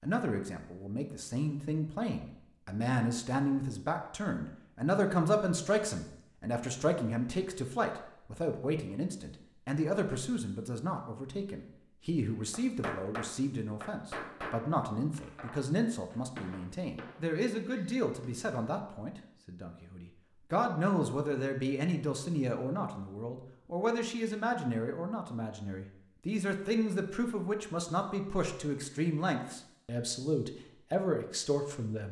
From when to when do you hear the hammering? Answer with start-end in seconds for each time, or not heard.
12.5-18.7.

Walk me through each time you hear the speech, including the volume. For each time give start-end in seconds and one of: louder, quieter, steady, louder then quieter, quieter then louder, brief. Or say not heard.
0.0-32.0 steady.